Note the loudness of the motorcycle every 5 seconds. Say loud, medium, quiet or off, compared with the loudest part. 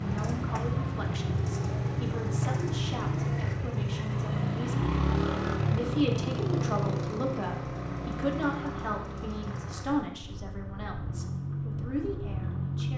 loud, loud, medium.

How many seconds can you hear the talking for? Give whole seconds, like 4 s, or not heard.
12 s.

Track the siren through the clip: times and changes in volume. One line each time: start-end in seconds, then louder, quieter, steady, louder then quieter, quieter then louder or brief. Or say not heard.
not heard.